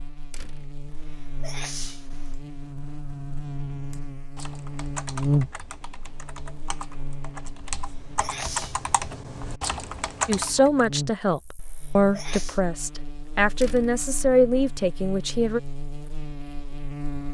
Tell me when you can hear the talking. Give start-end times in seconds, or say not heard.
10.2-15.6.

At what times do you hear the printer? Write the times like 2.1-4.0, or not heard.
not heard.